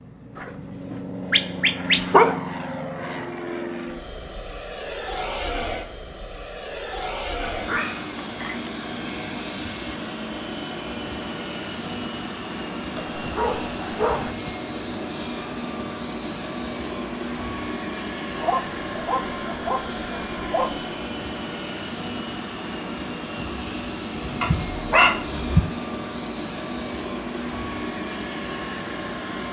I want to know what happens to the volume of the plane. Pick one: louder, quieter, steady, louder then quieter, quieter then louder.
steady.